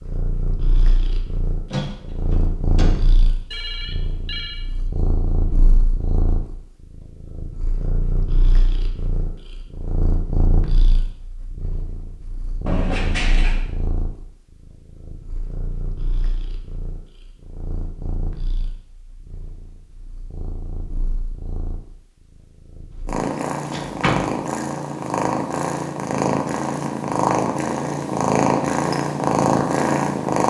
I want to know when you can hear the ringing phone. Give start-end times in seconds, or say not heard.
3.5-4.7.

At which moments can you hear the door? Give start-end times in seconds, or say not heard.
1.7-3.1, 12.7-13.6, 23.7-24.3.